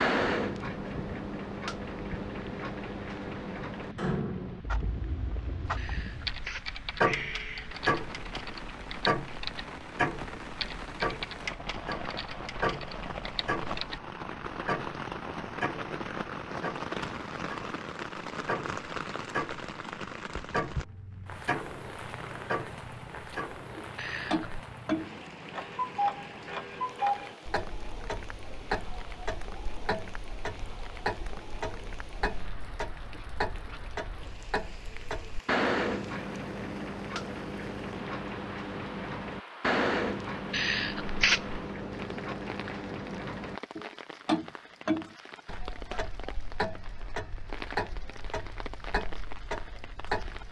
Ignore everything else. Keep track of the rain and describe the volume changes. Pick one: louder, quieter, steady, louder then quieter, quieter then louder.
louder then quieter.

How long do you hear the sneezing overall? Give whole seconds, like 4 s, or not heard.
4 s.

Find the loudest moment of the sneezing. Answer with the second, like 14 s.
41 s.